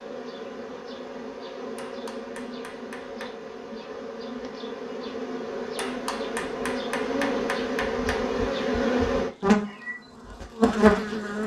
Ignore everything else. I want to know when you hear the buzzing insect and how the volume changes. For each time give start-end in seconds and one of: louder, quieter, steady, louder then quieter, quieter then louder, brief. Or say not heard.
0.0-11.4 louder.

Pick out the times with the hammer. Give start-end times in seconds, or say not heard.
1.8-3.4, 5.8-8.3.